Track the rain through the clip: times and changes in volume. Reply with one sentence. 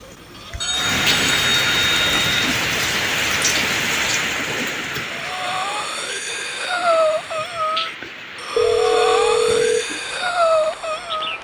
You can hear the rain from 0.5 to 11.3 s, getting quieter.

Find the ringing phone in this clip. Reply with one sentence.
The ringing phone can be heard from 0.6 to 2.5 s and from 8.6 to 9.8 s.